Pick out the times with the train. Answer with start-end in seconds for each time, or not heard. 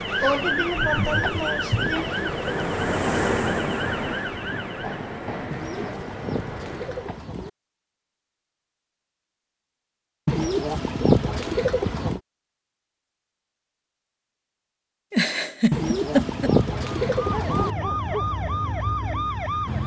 0.0-7.3.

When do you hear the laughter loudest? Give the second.
16 s.